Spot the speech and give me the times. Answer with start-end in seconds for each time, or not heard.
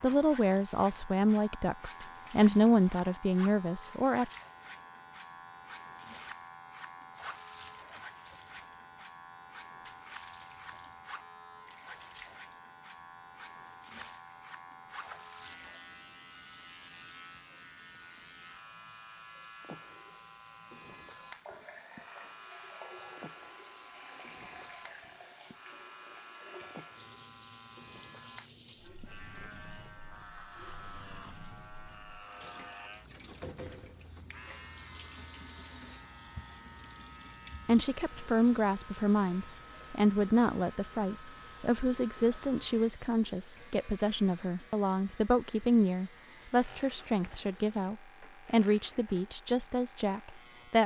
0.0-4.3, 37.6-50.8.